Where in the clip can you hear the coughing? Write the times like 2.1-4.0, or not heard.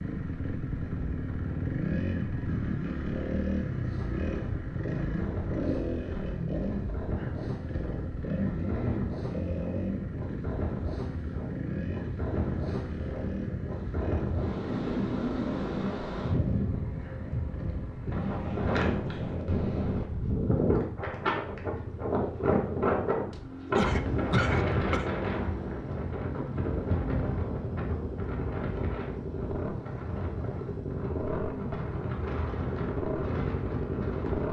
23.3-25.1.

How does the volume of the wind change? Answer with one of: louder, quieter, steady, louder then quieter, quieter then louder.
louder then quieter.